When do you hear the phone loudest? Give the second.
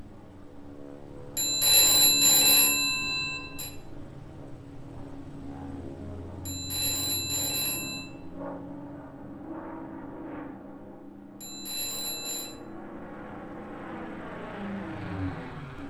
2 s.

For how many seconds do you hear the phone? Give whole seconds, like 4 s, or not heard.
5 s.